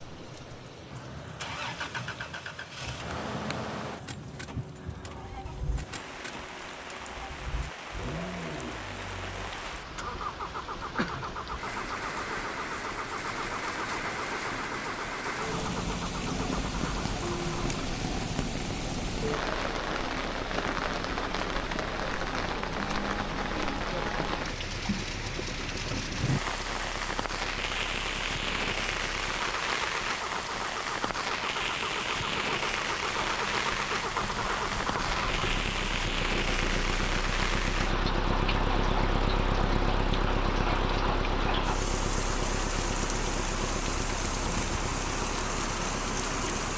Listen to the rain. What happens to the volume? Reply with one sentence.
The volume of the rain goes up.